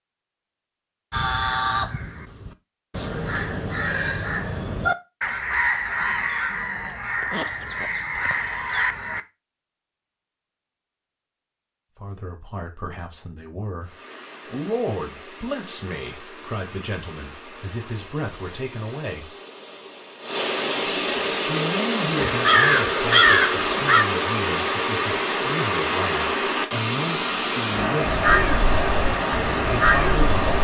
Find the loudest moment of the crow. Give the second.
23 s.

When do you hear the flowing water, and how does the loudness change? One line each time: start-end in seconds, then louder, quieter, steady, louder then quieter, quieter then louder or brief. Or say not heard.
13.8-30.5 louder.